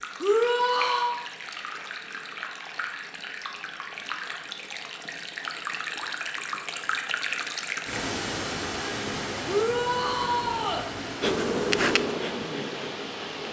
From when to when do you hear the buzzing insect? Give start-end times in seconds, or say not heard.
11.2-13.4.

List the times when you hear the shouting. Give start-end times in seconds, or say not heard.
0.2-1.2, 9.4-10.8.